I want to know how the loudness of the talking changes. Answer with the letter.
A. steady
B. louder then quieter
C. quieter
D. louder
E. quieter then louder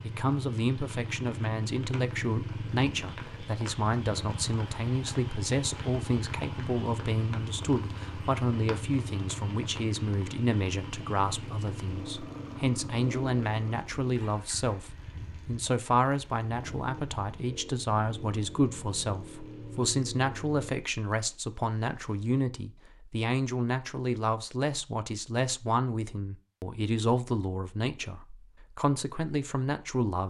A.